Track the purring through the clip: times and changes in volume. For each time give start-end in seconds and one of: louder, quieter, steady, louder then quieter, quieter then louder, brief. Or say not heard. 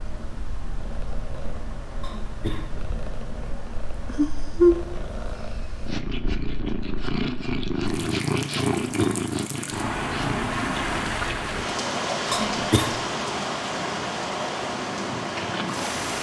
0.0-16.1 louder then quieter.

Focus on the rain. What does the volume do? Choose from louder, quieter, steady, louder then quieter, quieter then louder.
louder.